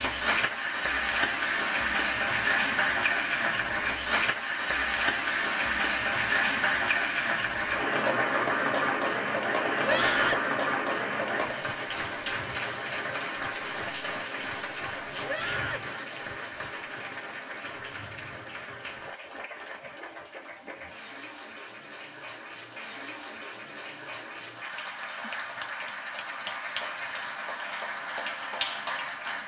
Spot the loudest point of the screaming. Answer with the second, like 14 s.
10 s.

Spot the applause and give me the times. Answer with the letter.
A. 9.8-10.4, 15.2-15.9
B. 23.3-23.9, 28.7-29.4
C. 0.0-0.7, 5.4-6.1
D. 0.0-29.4
D.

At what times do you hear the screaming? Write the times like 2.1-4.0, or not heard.
9.8-10.4, 15.2-15.9.